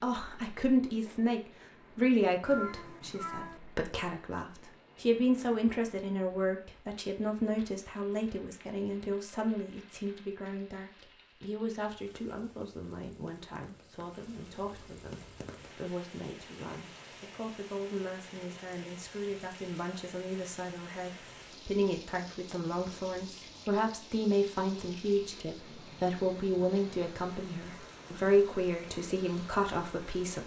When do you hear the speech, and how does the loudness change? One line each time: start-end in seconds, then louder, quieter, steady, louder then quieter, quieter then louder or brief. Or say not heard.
0.0-30.4 quieter then louder.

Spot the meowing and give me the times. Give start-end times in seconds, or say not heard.
2.5-3.6.